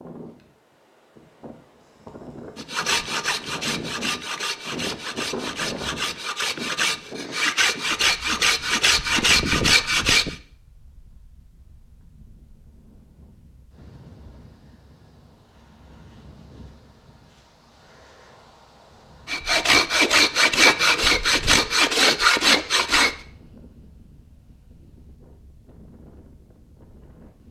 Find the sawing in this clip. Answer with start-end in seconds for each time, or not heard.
2.5-10.3, 19.2-23.1.